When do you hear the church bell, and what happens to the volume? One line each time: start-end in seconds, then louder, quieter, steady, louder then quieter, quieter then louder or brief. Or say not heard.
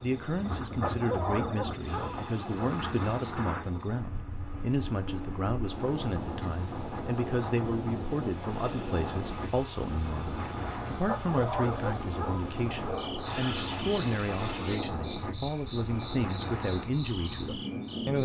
not heard.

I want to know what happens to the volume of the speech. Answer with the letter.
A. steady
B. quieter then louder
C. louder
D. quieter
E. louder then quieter
A.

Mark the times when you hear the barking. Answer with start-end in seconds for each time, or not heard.
0.8-2.7, 11.1-13.2.